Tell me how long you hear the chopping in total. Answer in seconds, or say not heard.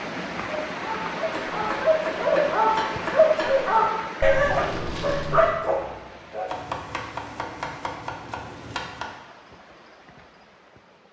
5 s.